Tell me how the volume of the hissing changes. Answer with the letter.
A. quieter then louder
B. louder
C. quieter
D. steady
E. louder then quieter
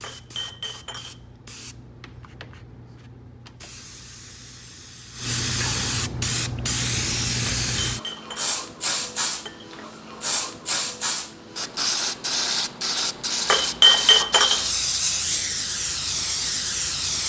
B.